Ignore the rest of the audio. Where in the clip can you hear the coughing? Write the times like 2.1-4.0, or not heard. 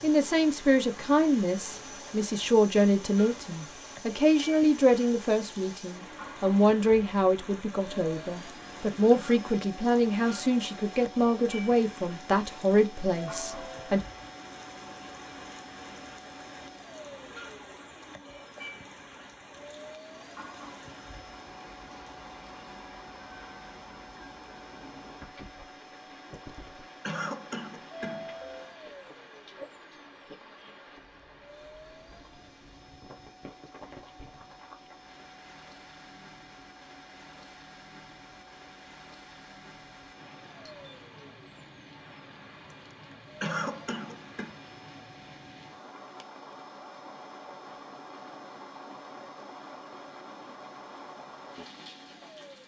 9.1-9.5, 27.0-28.6, 43.4-44.5.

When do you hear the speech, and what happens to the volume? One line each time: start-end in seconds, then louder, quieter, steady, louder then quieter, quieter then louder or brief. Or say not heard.
0.0-14.0 steady.